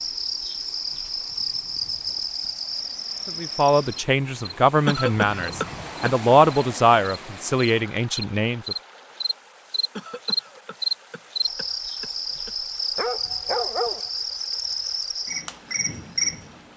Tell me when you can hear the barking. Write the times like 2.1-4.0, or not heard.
12.9-14.1.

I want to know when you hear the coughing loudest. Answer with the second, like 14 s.
5 s.